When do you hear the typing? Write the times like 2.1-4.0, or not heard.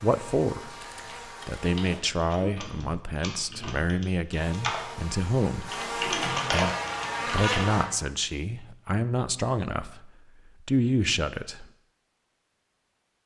0.7-7.7.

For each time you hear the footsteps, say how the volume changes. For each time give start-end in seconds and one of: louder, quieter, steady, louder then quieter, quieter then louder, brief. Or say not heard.
not heard.